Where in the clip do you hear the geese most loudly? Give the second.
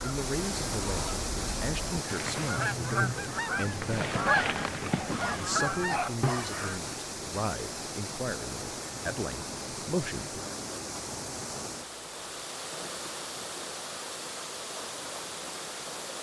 4 s.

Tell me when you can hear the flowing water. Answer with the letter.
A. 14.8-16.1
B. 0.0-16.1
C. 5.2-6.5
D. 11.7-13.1
B.